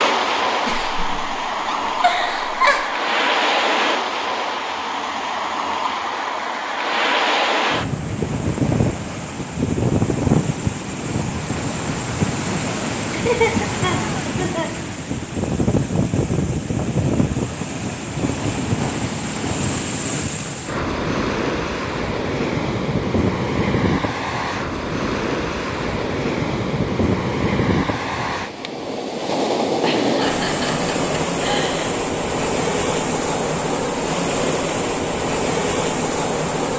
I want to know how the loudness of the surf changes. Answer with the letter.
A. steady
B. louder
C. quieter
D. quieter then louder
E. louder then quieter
A.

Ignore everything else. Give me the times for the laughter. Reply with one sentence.
You can hear the laughter from 0.7 to 2.9 s, from 13.1 to 14.7 s and from 29.8 to 31.9 s.